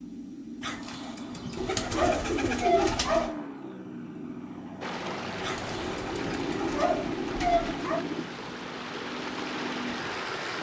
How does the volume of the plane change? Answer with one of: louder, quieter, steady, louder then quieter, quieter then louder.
louder then quieter.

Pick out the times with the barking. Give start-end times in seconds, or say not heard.
0.6-3.4, 5.4-8.1.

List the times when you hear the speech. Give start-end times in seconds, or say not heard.
not heard.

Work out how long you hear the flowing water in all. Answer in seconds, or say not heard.
6 s.